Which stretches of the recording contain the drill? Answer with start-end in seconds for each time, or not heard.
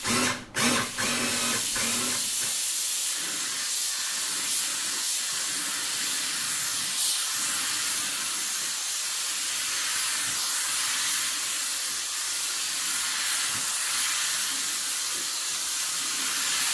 0.0-2.5.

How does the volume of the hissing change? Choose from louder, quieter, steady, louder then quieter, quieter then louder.
steady.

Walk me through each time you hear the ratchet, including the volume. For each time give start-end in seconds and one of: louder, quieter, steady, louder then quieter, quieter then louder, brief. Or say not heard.
not heard.